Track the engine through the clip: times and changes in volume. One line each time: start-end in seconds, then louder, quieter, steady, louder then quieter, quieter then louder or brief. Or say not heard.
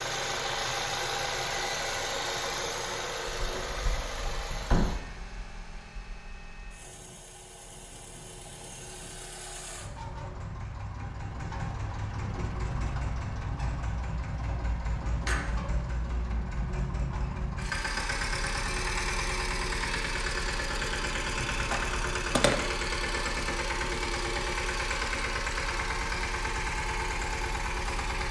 0.0-28.2 quieter then louder.